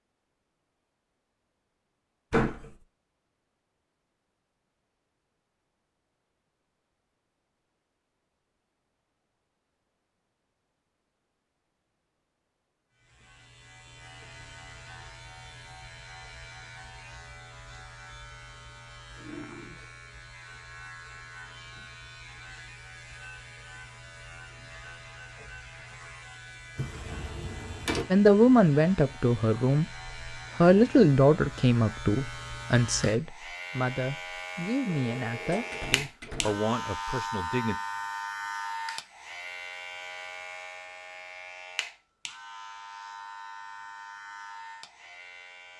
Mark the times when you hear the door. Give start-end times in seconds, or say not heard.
2.3-2.8, 26.8-28.1, 34.9-36.6.